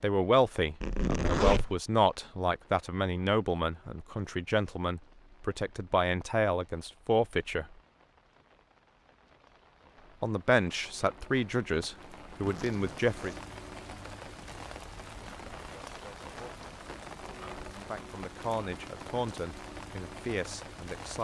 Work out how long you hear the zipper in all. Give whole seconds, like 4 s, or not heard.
2 s.